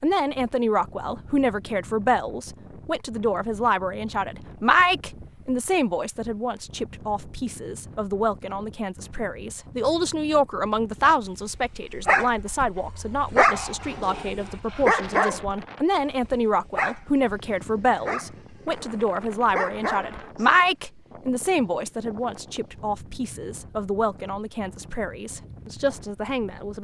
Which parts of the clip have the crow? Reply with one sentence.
The crow can't be heard in this clip.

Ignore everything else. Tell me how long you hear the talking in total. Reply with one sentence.
You can hear the talking for 27 seconds altogether.